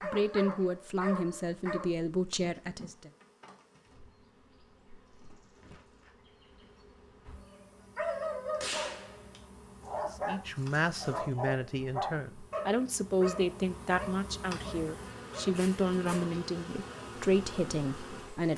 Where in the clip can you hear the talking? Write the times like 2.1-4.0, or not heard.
0.0-3.1, 10.1-18.5.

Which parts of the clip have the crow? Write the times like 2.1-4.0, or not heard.
not heard.